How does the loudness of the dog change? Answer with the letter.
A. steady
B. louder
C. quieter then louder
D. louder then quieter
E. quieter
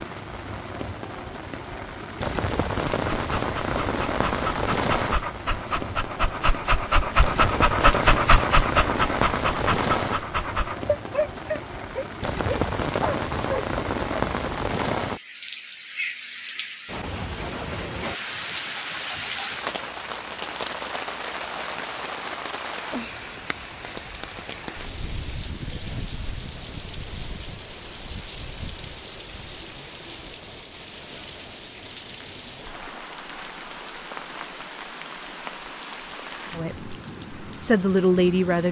D.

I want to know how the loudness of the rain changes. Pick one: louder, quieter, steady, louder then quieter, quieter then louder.
quieter.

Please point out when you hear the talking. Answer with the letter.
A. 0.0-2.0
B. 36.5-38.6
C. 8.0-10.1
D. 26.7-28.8
B.